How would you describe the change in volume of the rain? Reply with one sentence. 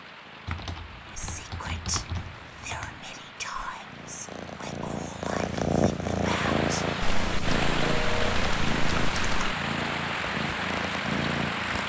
The volume of the rain goes up.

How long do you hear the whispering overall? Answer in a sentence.
You can hear the whispering for 6 seconds altogether.